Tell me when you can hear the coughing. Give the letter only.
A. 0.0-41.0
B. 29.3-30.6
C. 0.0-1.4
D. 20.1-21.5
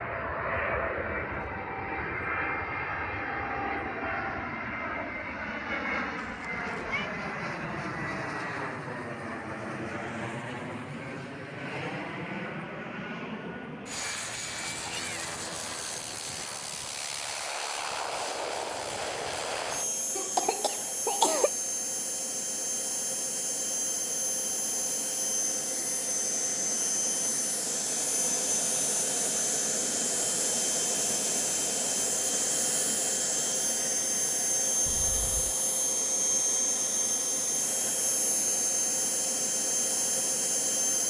D.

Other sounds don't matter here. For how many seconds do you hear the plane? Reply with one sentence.
The plane can be heard for 41 seconds in total.